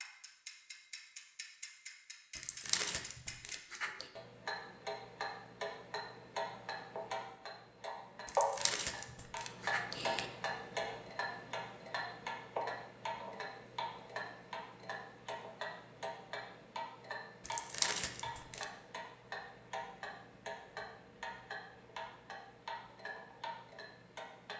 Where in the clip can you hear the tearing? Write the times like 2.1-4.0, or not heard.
2.4-4.0, 8.2-10.2, 17.4-18.6.